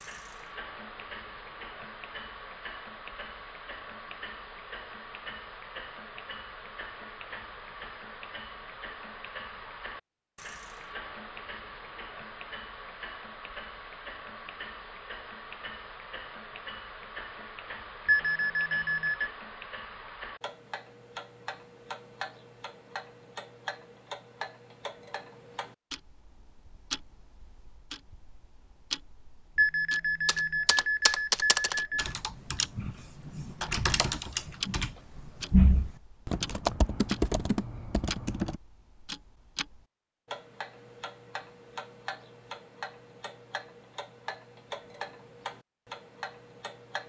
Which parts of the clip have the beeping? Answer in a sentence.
You can hear the beeping from 18.1 to 19.3 s and from 29.6 to 32.1 s.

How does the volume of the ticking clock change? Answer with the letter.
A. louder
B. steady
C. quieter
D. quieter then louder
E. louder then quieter
B.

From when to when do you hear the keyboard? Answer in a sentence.
The keyboard can be heard from 30.2 to 38.5 s.